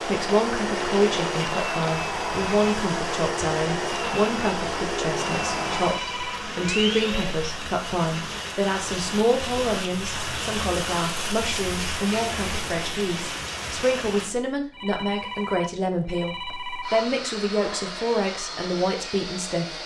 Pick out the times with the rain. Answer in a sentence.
You can hear the rain from 0.0 to 14.3 s.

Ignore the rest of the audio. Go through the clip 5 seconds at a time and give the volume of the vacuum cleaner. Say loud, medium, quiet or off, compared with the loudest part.
loud, loud, off, medium.